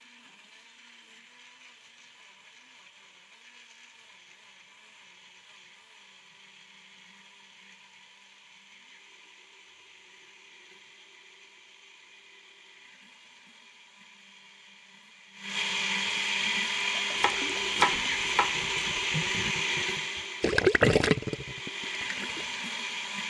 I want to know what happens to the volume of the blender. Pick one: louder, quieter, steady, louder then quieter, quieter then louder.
louder.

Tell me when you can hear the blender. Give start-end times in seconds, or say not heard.
0.0-23.2.